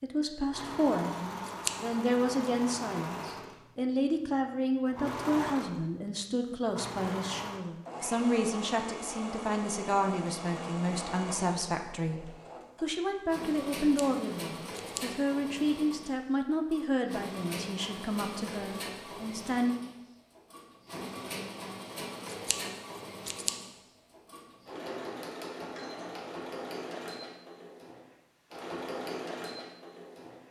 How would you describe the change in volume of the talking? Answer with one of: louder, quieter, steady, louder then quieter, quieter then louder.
steady.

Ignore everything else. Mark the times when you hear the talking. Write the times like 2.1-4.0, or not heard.
0.0-19.8.